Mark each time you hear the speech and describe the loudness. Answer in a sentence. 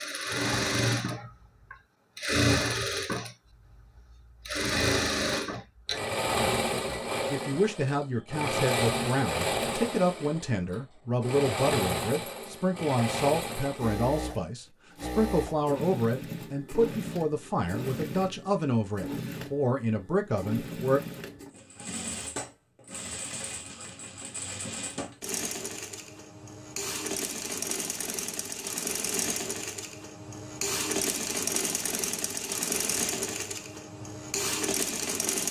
You can hear the speech from 6.8 to 21.0 s, at a steady volume.